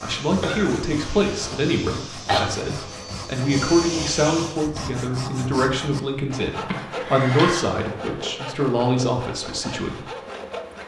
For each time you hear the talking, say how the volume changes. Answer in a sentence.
The talking can be heard from 0.0 to 10.1 s, at a steady volume.